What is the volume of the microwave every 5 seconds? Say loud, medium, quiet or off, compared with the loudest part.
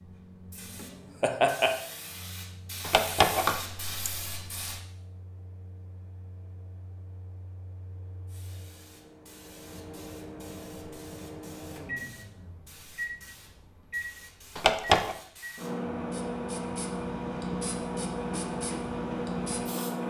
quiet, quiet, medium, loud.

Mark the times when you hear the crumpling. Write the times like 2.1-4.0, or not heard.
2.9-4.7, 14.6-15.2.